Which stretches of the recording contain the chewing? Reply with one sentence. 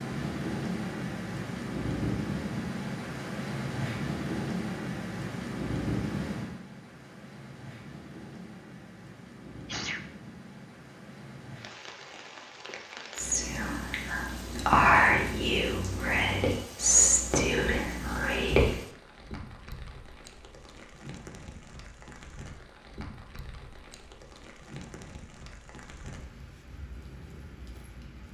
You can't hear the chewing here.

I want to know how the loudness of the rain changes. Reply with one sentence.
The loudness of the rain goes down.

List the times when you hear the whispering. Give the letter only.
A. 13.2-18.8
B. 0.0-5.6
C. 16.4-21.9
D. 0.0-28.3
A.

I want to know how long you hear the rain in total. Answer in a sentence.
You can hear the rain for 28 seconds altogether.